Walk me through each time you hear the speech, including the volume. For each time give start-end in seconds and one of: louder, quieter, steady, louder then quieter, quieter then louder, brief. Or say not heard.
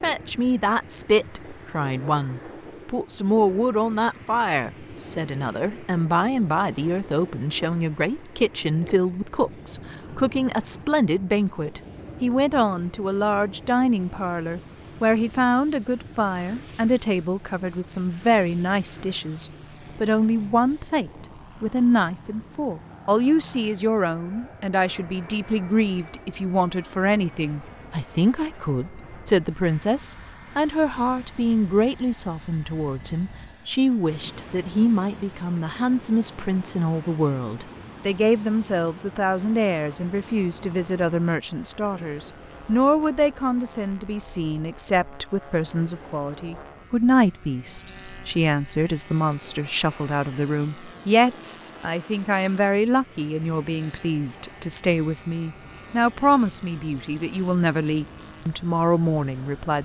0.0-59.7 steady.